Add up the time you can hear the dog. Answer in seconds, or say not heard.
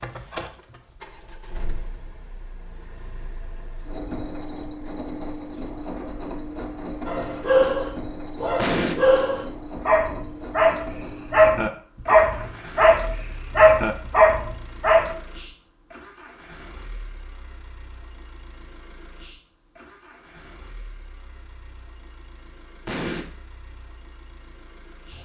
8 s.